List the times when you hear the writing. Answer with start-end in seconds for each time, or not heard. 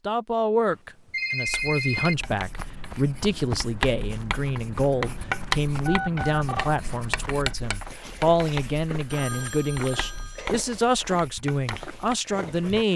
1.4-12.8.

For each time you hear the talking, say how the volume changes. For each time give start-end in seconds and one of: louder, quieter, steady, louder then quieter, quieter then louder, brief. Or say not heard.
0.1-12.9 steady.